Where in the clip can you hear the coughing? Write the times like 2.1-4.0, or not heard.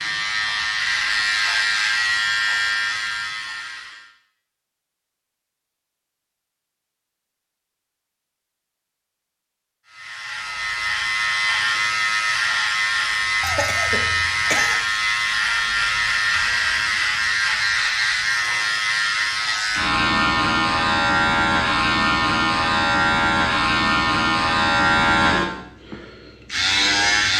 13.4-14.8.